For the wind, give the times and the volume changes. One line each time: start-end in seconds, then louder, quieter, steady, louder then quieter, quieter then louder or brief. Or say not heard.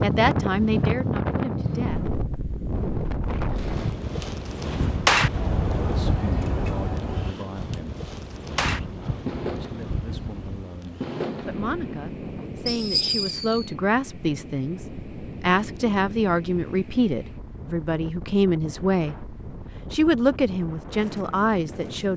0.0-22.1 quieter.